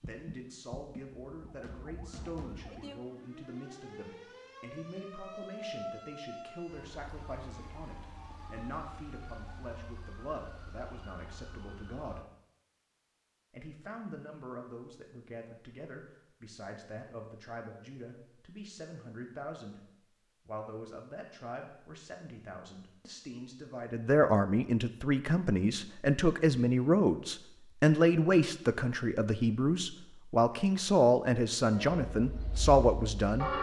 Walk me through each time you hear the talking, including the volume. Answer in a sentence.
The talking can be heard from 0.0 to 12.2 s, at a steady volume; and from 13.5 to 33.5 s, getting louder.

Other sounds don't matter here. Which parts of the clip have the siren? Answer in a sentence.
The siren can be heard from 0.0 to 12.2 s.